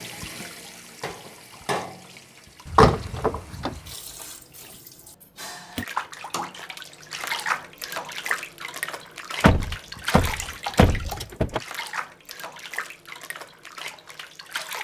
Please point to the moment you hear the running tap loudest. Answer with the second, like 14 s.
8 s.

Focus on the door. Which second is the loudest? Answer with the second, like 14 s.
3 s.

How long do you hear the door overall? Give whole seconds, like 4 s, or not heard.
3 s.